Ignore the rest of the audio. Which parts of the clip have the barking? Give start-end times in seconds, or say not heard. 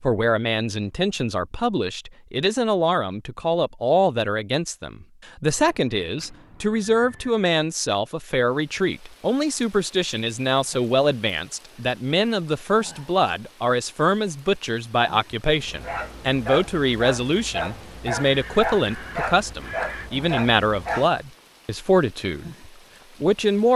15.6-21.1.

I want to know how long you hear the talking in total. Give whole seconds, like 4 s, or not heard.
24 s.